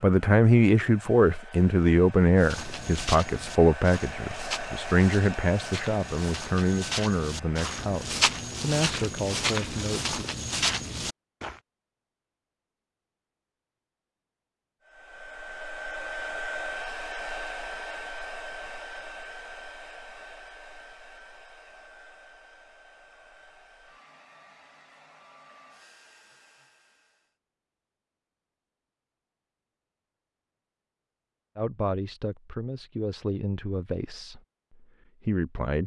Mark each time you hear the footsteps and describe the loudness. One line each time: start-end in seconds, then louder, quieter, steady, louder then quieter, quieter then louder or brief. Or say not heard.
2.4-11.6 louder.